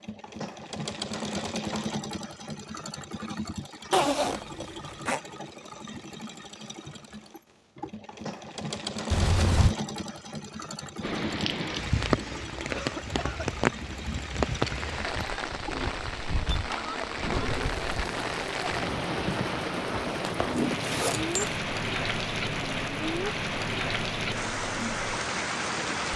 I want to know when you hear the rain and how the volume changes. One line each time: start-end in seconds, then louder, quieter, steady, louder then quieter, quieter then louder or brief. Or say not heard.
11.0-26.1 steady.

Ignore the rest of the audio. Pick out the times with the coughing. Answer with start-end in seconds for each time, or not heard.
12.7-13.5.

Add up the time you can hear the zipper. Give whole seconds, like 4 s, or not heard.
3 s.